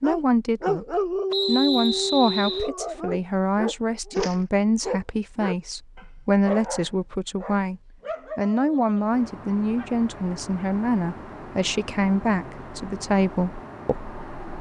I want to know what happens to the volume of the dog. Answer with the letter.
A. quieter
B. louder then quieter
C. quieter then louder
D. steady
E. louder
A.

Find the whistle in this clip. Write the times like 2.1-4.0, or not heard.
1.3-2.7.